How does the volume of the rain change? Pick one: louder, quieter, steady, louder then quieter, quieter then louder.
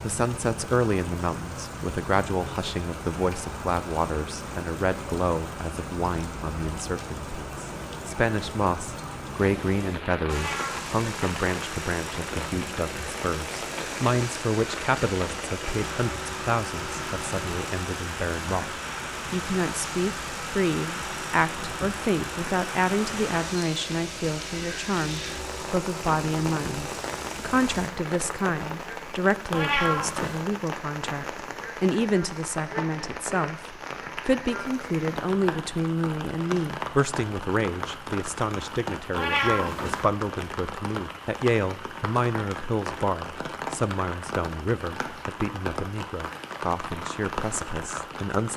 steady.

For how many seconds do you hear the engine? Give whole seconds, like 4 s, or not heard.
18 s.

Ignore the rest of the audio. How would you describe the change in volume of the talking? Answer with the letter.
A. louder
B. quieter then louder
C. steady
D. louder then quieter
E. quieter
C.